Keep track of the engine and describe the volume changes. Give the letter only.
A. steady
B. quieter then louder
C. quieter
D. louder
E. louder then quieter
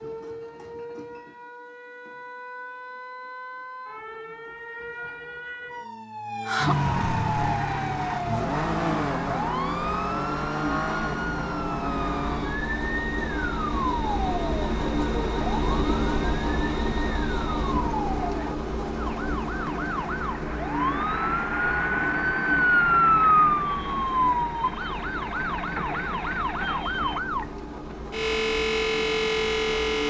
E.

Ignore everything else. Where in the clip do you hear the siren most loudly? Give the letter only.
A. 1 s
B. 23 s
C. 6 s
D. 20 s
B.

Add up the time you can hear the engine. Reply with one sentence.
You can hear the engine for 23 seconds altogether.